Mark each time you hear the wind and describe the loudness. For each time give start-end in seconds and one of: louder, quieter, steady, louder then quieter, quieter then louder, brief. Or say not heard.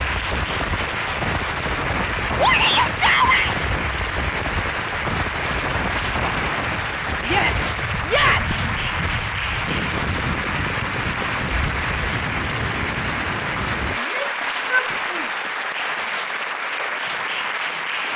0.0-14.0 steady.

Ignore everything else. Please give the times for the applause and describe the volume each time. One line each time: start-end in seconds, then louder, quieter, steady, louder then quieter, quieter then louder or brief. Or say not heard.
0.0-18.1 steady.